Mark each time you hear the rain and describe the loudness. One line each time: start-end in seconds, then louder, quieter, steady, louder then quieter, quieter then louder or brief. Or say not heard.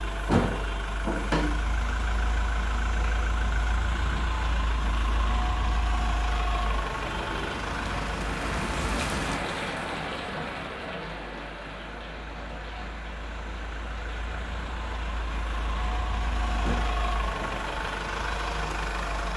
0.0-19.3 louder then quieter.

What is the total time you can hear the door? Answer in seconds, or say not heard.
2 s.